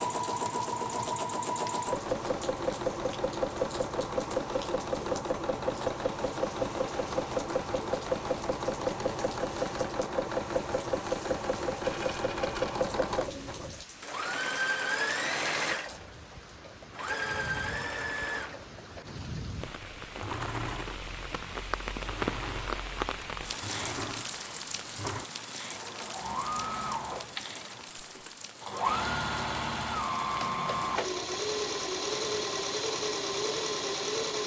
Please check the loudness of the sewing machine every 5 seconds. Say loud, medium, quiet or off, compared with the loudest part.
loud, loud, loud, loud, medium, loud, loud.